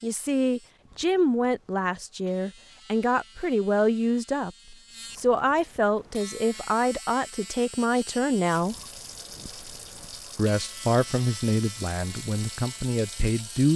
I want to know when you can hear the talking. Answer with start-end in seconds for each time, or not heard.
0.0-8.8, 10.3-13.7.